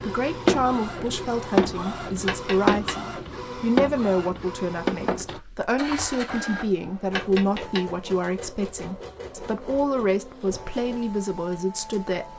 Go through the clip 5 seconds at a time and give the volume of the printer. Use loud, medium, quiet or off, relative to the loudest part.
loud, medium, quiet.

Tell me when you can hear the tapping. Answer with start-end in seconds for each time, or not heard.
2.2-3.0, 7.2-7.8.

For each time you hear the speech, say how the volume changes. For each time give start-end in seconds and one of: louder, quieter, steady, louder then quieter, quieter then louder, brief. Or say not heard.
0.0-12.3 steady.